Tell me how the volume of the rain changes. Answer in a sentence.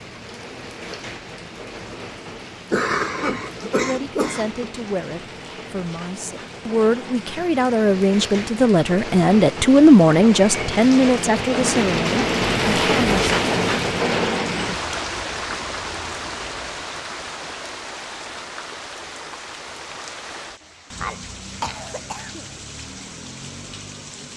The volume of the rain goes up, then down.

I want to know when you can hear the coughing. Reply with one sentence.
You can hear the coughing from 2.7 to 4.7 s and from 20.6 to 22.5 s.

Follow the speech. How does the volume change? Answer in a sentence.
The volume of the speech goes up, then down.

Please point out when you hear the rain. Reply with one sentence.
You can hear the rain from 0.0 to 24.3 s.